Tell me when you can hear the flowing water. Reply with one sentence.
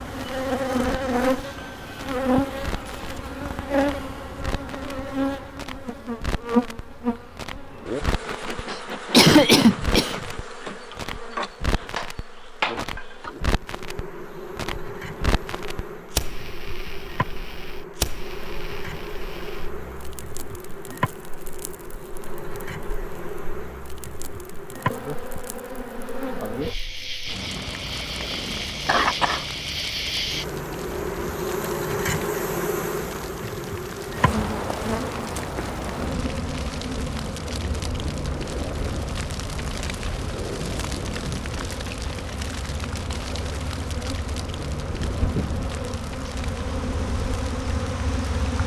The flowing water can't be heard in this clip.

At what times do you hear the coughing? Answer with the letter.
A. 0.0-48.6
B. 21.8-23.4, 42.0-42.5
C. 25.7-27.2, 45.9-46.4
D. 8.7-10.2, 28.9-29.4
D.